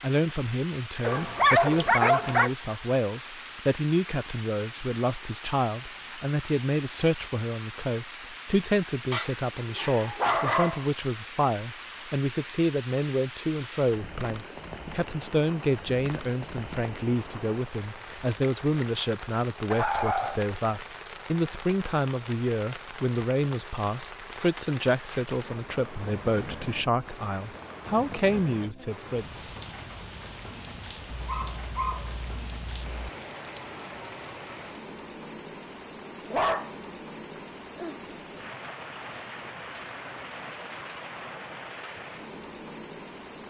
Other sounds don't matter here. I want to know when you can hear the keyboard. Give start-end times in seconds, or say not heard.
not heard.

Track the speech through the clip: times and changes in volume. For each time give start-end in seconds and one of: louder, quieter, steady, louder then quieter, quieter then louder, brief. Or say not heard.
0.0-29.5 steady.